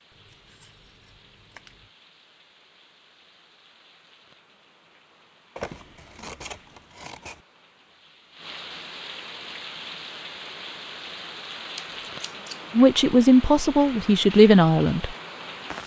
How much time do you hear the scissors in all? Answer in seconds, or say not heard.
5 s.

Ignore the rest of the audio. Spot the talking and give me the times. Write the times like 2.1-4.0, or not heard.
12.7-15.2.